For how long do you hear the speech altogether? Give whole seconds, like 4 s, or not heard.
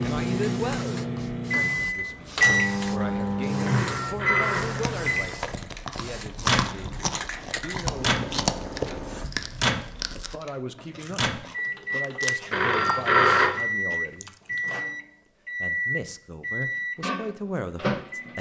16 s.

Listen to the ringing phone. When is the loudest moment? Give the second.
13 s.